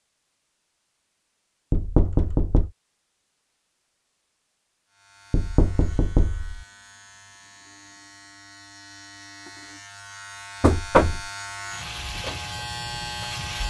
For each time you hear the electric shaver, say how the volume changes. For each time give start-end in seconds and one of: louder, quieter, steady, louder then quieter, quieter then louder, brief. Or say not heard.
4.9-13.6 louder.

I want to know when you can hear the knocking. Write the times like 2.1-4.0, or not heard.
1.7-2.7, 5.3-6.7, 10.6-11.2.